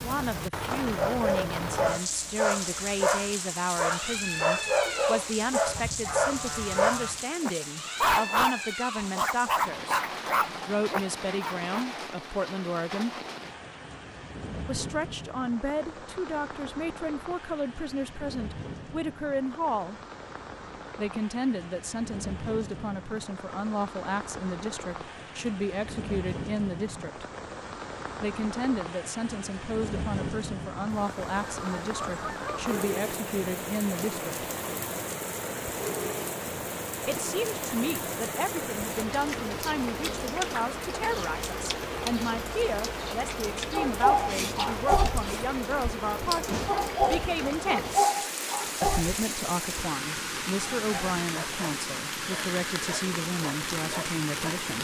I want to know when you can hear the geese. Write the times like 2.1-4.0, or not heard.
5.7-7.2, 30.9-32.8.